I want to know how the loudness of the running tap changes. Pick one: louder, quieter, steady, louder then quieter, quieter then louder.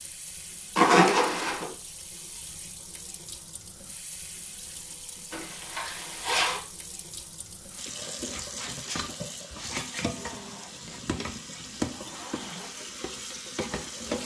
louder.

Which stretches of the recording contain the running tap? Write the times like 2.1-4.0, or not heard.
0.0-14.2.